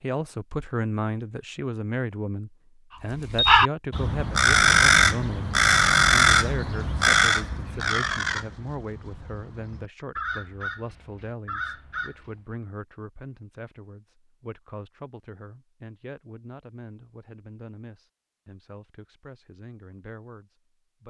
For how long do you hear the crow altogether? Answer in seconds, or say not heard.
9 s.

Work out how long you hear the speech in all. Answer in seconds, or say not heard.
21 s.